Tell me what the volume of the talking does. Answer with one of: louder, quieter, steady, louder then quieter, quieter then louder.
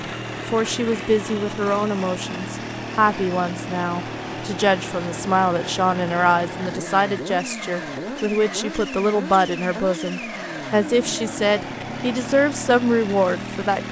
steady.